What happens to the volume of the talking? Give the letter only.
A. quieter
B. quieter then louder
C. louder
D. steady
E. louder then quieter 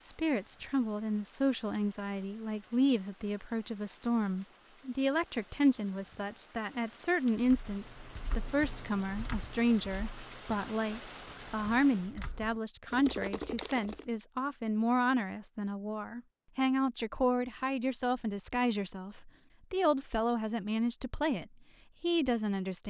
D.